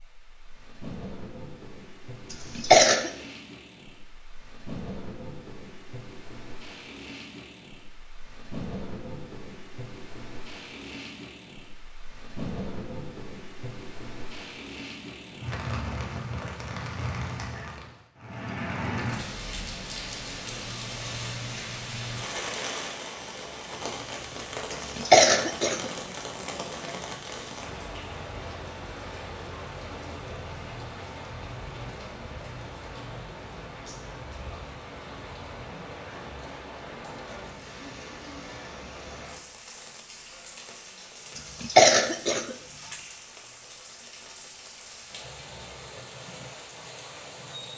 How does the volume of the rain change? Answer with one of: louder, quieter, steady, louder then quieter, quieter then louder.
louder then quieter.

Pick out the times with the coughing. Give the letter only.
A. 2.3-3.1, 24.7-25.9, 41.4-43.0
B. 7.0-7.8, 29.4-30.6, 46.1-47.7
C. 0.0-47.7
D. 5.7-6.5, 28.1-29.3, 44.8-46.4
A.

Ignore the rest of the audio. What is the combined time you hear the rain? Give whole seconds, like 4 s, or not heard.
48 s.